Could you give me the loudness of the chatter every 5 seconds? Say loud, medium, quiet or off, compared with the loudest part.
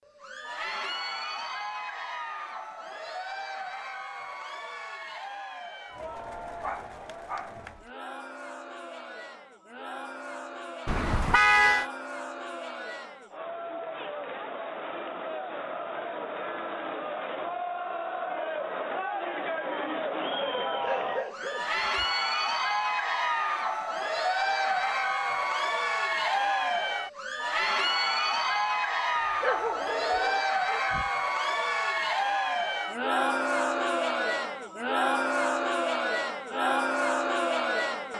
medium, quiet, medium, medium, loud, loud, loud, loud.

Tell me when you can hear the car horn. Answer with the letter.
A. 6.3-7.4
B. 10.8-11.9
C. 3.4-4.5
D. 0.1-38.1
B.